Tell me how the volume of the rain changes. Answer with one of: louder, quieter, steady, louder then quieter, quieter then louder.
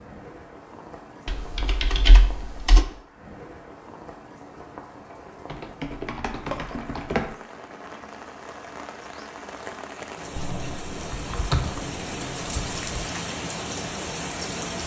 louder.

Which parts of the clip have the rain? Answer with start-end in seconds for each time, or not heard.
0.0-14.8.